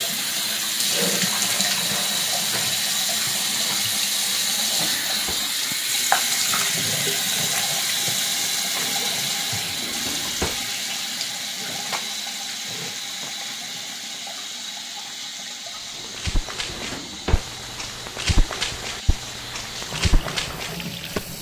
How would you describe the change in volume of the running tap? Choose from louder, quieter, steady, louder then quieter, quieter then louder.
quieter.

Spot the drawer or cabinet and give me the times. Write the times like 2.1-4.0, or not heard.
4.7-5.5, 9.8-10.7, 16.6-17.5.